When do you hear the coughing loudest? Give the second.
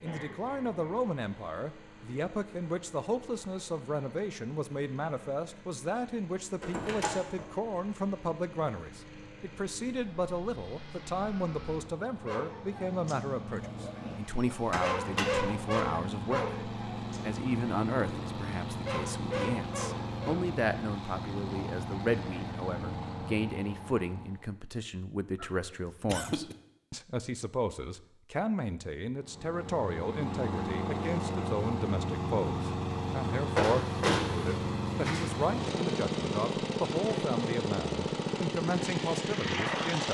26 s.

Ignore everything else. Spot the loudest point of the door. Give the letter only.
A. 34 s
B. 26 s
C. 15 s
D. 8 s
A.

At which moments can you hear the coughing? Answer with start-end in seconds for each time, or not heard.
0.0-0.8, 25.4-26.6.